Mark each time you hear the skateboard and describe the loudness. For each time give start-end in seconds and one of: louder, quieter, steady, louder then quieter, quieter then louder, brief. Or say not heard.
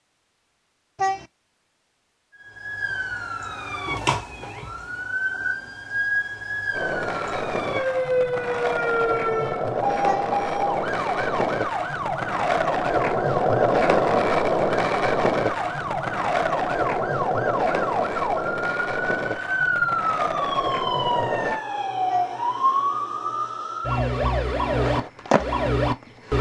6.7-21.6 louder then quieter
24.7-26.3 brief.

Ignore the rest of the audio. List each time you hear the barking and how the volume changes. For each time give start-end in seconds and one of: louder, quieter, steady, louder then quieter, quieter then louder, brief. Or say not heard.
not heard.